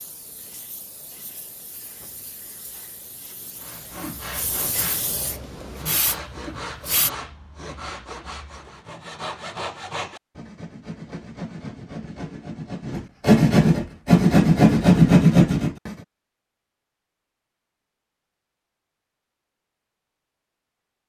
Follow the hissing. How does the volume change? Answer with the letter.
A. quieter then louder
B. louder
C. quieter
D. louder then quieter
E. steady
B.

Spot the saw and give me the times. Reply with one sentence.
The saw can be heard from 3.5 to 15.9 s.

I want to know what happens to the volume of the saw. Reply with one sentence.
The volume of the saw goes up.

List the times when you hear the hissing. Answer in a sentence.
You can hear the hissing from 0.0 to 7.1 s.